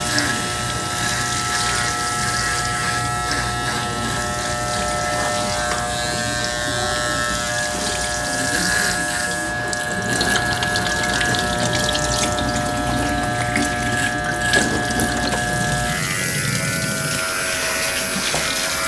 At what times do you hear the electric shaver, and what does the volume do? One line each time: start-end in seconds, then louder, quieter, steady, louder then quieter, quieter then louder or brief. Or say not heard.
0.0-18.8 steady.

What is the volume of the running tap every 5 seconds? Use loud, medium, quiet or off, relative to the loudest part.
medium, medium, loud, loud.